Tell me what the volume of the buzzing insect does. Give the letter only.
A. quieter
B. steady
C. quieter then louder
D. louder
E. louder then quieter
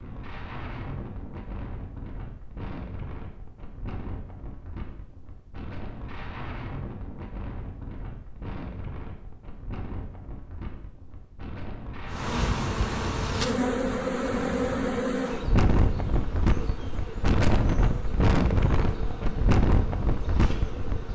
A.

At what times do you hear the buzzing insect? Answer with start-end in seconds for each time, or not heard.
12.1-21.1.